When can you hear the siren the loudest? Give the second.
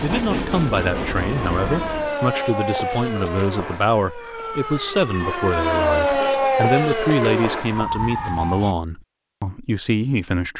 6 s.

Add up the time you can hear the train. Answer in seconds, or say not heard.
2 s.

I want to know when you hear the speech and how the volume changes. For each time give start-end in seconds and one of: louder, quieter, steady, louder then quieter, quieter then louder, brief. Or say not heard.
0.0-10.5 steady.